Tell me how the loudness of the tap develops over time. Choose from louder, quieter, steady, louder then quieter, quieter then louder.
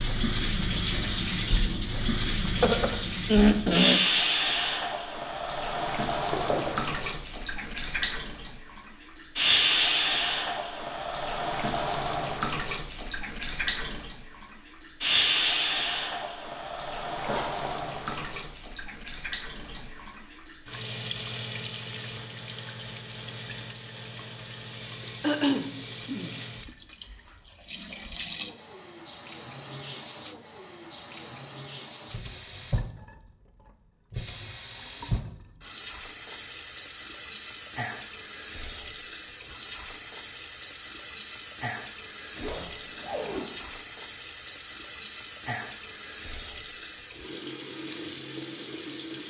quieter.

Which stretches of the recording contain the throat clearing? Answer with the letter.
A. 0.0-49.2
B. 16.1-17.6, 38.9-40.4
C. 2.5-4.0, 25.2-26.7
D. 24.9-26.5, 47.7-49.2
C.